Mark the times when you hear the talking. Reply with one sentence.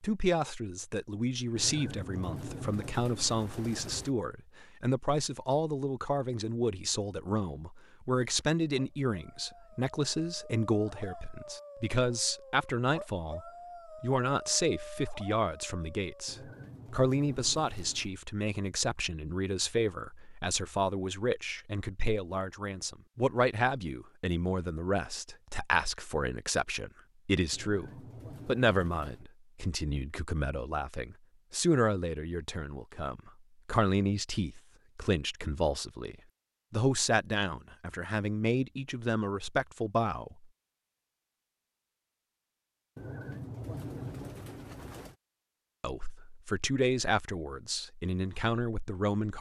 The talking can be heard from 0.0 to 40.5 s and from 45.8 to 49.3 s.